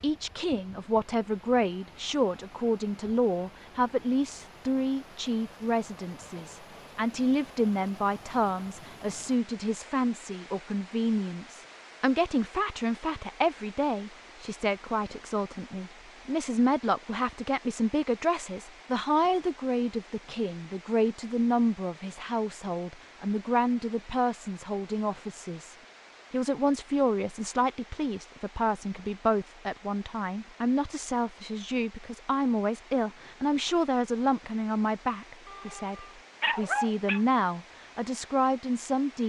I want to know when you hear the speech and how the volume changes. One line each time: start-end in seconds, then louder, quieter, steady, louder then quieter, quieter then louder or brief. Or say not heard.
0.0-39.2 steady.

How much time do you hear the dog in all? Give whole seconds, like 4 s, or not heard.
2 s.